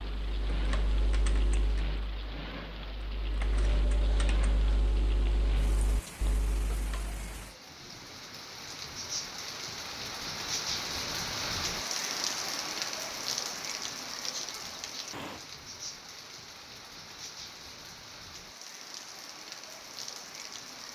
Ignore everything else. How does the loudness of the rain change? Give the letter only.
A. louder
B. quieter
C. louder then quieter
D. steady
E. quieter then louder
C.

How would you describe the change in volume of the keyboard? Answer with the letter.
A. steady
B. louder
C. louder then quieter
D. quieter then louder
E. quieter
D.